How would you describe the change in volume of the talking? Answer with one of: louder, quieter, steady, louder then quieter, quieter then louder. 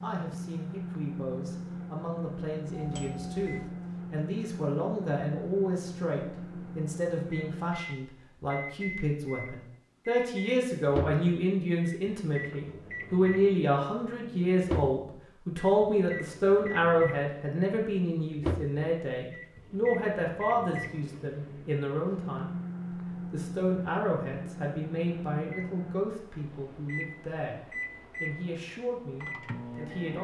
louder then quieter.